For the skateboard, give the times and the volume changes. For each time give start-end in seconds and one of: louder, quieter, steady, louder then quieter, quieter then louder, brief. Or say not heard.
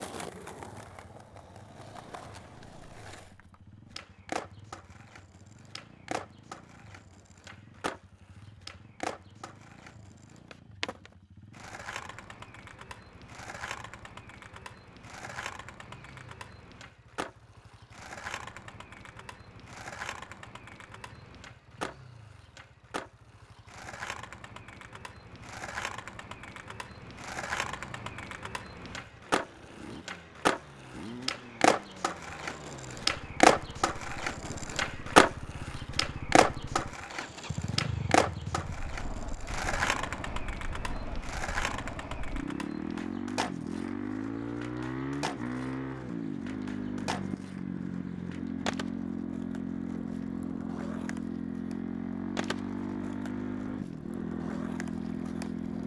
0.0-55.8 louder then quieter.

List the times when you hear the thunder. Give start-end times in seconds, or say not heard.
not heard.